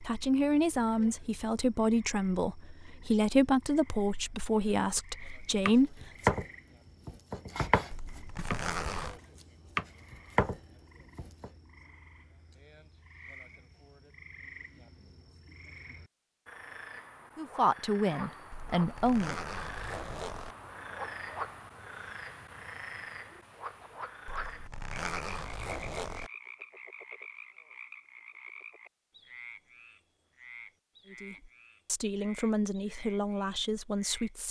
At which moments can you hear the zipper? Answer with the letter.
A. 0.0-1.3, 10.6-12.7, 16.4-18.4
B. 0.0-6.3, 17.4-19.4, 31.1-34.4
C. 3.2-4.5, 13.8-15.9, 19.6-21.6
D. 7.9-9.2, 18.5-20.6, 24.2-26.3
D.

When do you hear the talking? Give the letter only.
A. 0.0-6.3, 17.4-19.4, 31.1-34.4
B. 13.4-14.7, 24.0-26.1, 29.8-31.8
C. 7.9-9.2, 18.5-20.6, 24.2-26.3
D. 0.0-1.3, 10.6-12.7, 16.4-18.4
A.